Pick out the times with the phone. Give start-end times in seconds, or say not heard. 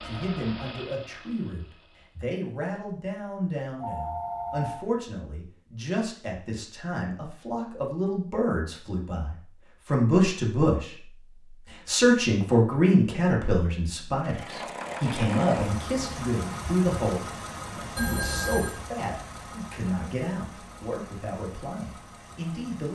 3.8-4.8, 17.9-18.8.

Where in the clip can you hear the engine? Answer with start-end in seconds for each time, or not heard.
0.0-2.2, 14.2-22.9.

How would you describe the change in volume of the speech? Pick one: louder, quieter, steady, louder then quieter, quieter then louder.
louder then quieter.